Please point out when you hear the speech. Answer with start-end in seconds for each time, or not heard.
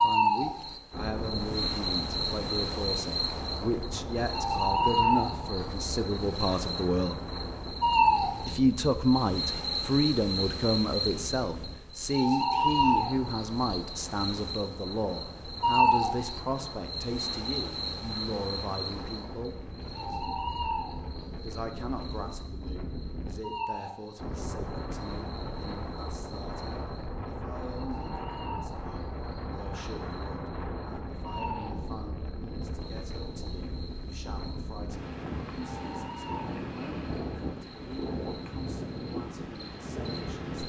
0.0-7.2, 8.4-19.6, 21.4-40.6.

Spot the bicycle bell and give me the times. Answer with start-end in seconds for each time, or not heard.
not heard.